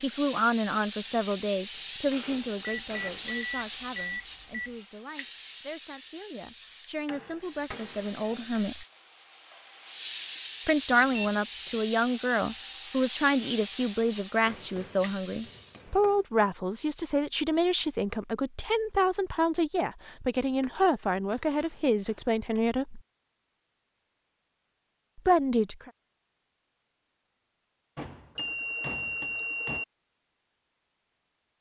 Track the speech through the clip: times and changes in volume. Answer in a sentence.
The speech can be heard from 0.0 to 8.8 s, getting quieter then louder; from 10.7 to 23.0 s, at a steady volume; and briefly from 25.1 to 25.9 s.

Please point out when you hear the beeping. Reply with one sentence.
You can hear the beeping from 2.6 to 4.8 s, from 10.9 to 11.3 s and from 28.4 to 29.9 s.